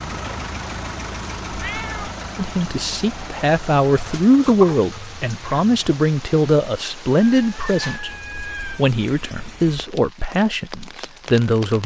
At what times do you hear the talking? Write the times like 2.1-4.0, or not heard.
2.4-11.8.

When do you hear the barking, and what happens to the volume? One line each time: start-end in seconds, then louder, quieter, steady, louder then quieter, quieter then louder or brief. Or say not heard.
not heard.